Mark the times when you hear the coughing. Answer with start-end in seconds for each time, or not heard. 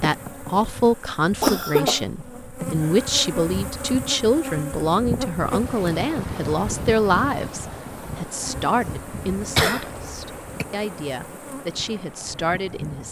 1.4-2.5, 9.3-10.7.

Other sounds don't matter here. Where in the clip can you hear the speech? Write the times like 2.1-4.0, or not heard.
0.0-13.0.